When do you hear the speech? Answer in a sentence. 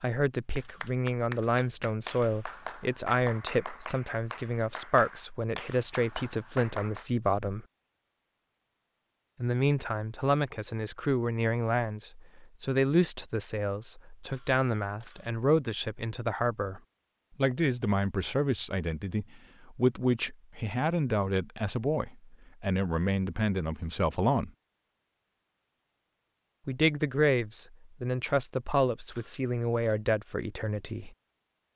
The speech can be heard from 0.0 to 7.7 s, from 9.4 to 24.5 s and from 26.6 to 31.1 s.